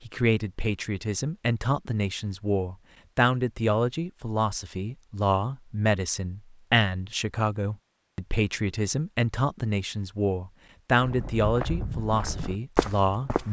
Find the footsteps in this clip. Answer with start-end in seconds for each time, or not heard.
11.0-13.4.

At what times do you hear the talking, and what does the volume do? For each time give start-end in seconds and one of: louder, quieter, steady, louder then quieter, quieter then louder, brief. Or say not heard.
0.0-13.4 steady.